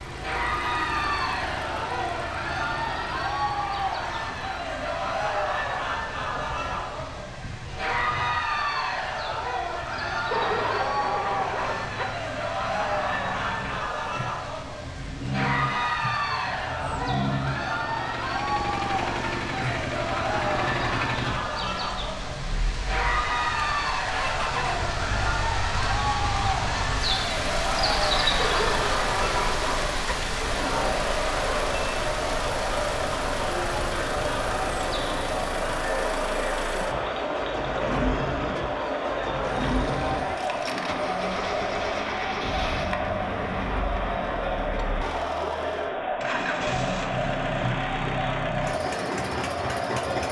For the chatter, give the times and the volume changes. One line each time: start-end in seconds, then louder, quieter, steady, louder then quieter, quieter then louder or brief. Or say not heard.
0.1-50.2 steady.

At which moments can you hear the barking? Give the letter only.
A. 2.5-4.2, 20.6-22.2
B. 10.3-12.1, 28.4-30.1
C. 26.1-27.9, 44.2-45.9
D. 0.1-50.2
B.